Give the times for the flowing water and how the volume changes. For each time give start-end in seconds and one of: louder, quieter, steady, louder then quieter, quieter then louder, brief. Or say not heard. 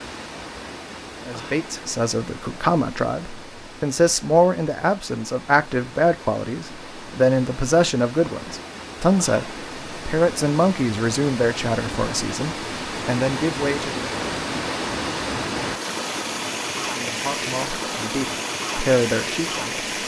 0.0-20.0 louder.